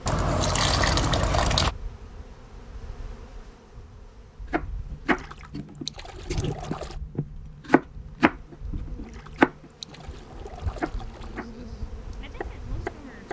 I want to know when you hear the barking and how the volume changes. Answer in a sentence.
The barking can't be heard in this clip.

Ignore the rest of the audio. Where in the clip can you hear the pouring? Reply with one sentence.
The pouring can be heard from 0.1 to 1.8 s, from 5.0 to 7.0 s and from 9.0 to 11.4 s.